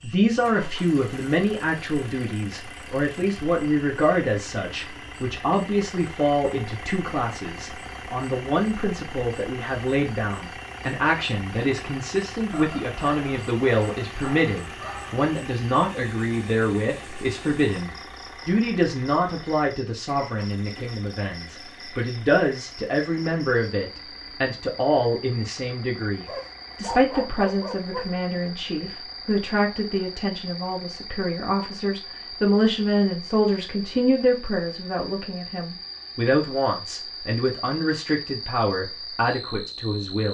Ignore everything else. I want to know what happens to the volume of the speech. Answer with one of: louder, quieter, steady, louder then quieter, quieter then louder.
steady.